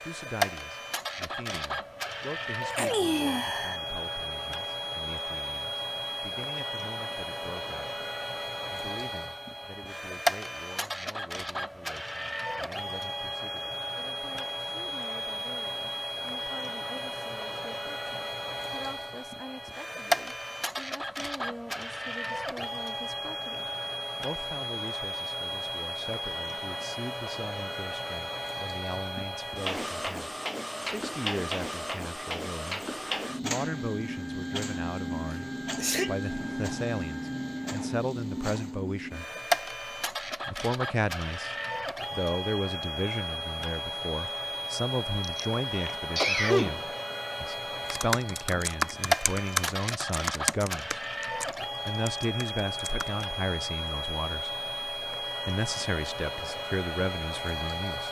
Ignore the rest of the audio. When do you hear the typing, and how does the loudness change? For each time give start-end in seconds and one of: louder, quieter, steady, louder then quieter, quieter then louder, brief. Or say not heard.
47.9-53.2 quieter.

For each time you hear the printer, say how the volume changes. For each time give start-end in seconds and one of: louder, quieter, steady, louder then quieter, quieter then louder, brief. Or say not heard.
0.0-58.0 steady.